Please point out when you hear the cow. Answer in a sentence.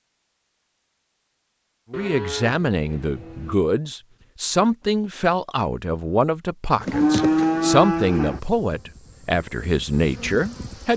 The cow can be heard from 1.9 to 3.5 s and from 6.9 to 8.4 s.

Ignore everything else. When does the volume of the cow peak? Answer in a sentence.
The loudest moment of the cow is at 7 seconds.